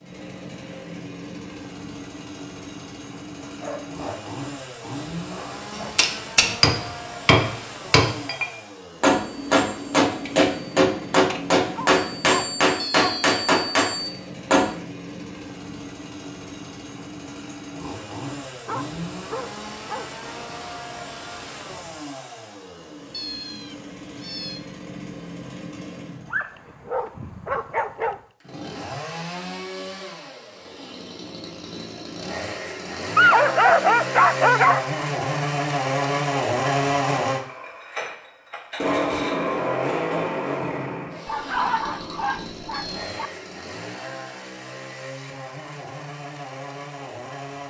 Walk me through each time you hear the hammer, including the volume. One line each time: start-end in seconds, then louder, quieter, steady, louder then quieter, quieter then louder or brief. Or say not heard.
5.8-14.8 steady.